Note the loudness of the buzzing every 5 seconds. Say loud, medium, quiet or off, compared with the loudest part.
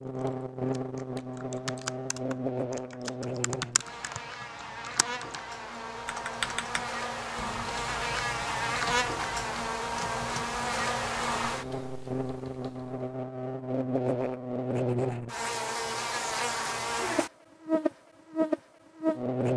medium, loud, loud, loud.